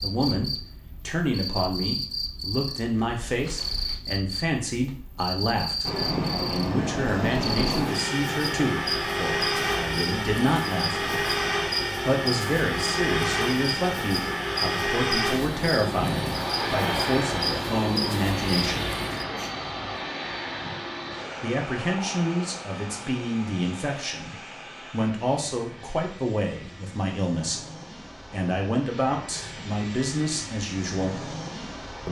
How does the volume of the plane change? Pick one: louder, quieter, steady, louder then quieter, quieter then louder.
quieter.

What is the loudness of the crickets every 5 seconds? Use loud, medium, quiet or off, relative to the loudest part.
loud, loud, loud, loud, off, off, off.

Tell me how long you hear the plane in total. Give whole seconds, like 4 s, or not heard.
26 s.